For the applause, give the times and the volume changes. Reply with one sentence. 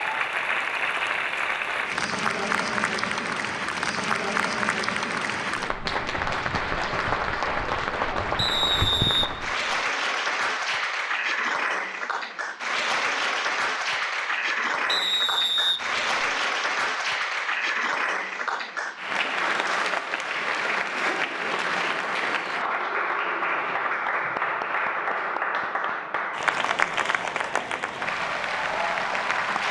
The applause can be heard from 0.0 to 29.6 s, at a steady volume.